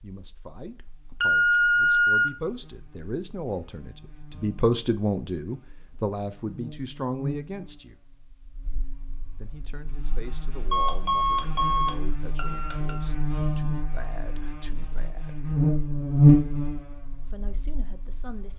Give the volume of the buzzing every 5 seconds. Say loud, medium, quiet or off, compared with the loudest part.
quiet, quiet, quiet, loud.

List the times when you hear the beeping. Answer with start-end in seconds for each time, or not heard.
1.2-2.3, 10.7-13.1.